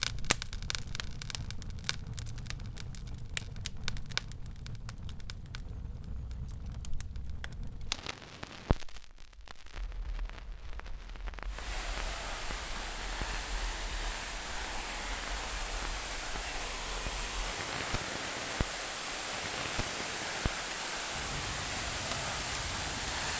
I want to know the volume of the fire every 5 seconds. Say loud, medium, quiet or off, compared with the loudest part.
loud, medium, medium, medium, medium.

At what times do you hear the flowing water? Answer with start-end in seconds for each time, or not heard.
11.4-23.3.